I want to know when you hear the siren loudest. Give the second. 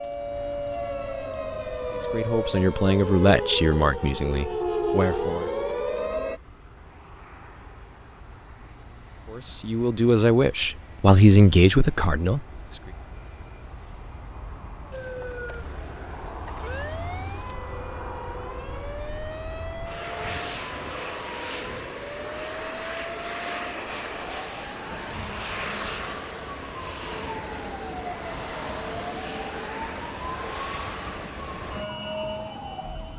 5 s.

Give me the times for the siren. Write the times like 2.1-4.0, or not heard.
0.0-6.4, 14.9-33.1.